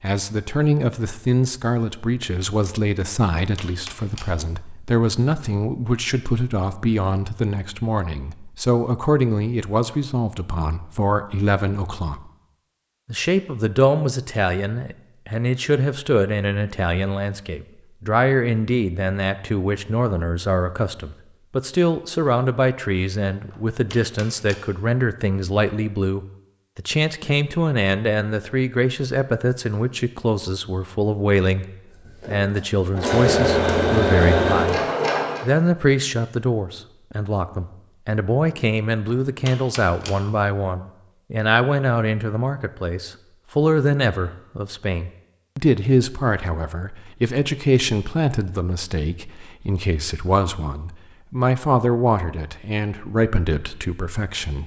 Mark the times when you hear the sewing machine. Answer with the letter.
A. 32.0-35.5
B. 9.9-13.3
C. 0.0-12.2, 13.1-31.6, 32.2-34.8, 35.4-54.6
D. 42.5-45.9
A.